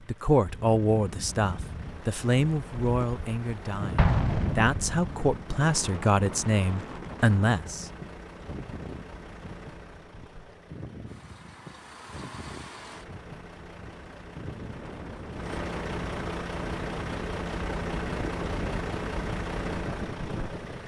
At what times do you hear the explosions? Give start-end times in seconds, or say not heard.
4.0-5.2.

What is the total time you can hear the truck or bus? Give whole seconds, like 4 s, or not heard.
21 s.